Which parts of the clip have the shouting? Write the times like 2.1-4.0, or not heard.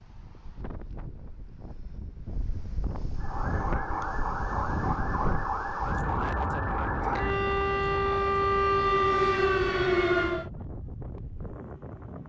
not heard.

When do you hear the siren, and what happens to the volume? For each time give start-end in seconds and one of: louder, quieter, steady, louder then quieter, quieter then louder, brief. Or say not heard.
3.1-10.5 louder.